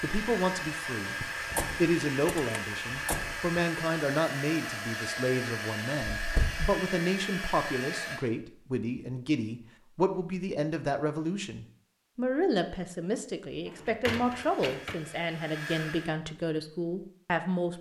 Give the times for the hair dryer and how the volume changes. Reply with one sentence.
You can hear the hair dryer from 0.0 to 8.2 s, at a steady volume; and briefly from 14.3 to 16.1 s.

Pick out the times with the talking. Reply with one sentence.
The talking can be heard from 0.0 to 17.7 s.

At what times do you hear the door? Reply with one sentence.
You can hear the door from 1.2 to 3.6 s, from 6.2 to 6.7 s and from 13.7 to 15.0 s.